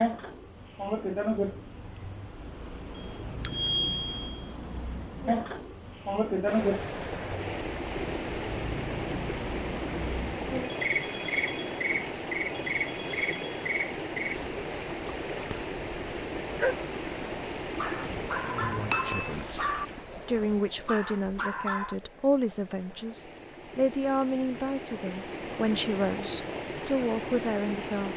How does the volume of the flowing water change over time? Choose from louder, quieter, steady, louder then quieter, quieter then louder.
quieter then louder.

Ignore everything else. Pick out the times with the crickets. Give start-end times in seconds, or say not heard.
0.0-20.6.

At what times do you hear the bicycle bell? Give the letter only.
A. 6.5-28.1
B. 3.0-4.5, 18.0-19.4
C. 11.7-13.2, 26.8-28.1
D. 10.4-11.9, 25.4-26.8
B.